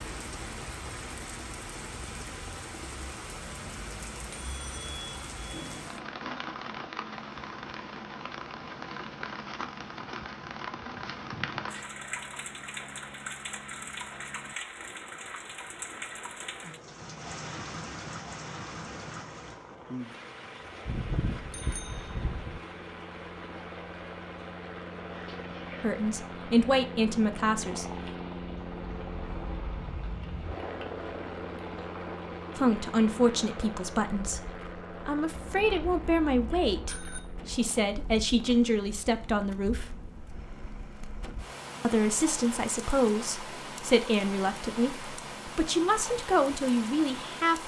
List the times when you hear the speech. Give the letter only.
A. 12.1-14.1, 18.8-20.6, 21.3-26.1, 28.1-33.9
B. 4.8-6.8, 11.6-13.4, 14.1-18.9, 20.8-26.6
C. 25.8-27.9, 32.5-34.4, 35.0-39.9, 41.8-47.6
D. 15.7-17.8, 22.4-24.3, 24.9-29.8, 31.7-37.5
C.